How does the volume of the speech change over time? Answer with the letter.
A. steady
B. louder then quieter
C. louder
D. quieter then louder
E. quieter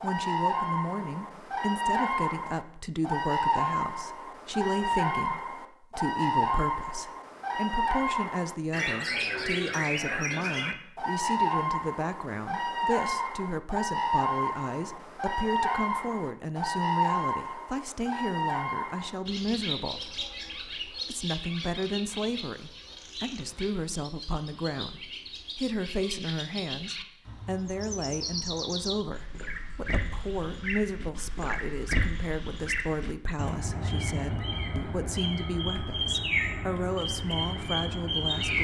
A.